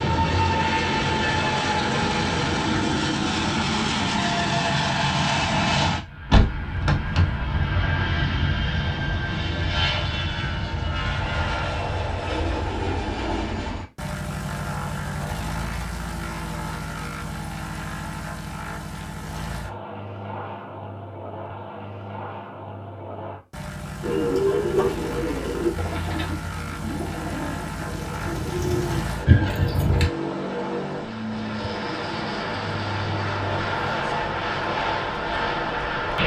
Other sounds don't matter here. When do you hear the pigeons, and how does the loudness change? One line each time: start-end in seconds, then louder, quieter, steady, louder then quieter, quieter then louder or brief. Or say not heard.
24.0-30.1 quieter then louder.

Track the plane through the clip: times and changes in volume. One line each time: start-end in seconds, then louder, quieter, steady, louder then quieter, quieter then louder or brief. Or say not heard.
0.0-36.2 quieter then louder.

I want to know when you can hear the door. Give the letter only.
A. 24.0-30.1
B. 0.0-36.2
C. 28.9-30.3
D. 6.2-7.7
D.